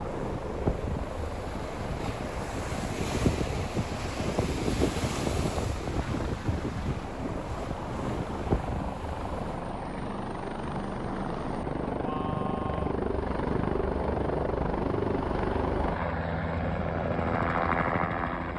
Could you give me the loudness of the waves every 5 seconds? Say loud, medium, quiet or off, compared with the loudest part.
loud, loud, off, off.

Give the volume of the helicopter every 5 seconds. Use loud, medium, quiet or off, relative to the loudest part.
medium, medium, loud, loud.